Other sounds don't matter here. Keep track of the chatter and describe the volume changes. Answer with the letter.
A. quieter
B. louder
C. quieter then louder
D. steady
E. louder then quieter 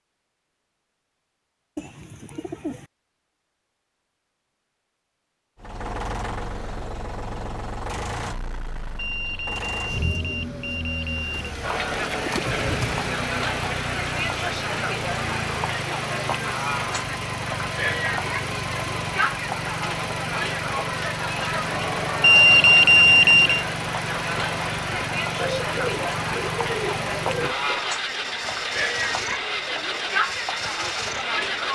D.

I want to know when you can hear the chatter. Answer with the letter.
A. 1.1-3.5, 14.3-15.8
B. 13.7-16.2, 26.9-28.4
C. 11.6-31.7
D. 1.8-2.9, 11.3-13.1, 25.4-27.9
C.